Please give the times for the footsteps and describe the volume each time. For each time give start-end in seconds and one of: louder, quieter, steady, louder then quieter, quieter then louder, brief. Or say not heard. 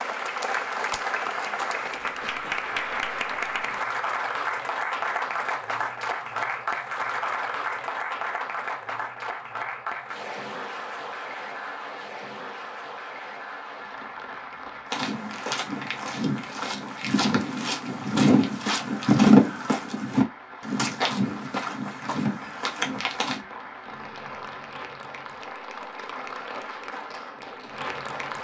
14.9-23.4 louder then quieter.